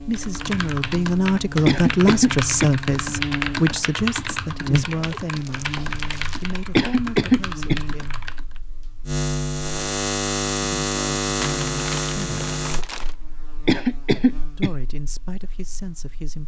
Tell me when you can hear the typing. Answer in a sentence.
You can hear the typing from 0.1 to 8.6 s.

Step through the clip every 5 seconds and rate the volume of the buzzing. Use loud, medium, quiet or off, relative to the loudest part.
loud, loud, loud, quiet.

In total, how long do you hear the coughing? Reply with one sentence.
You can hear the coughing for 3 seconds altogether.